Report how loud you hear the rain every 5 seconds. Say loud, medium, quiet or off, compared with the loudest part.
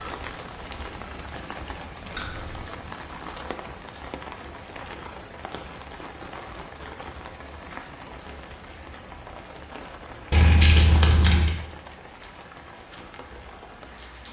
loud, loud, medium.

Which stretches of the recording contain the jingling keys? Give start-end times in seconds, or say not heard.
2.1-2.8, 10.3-11.6.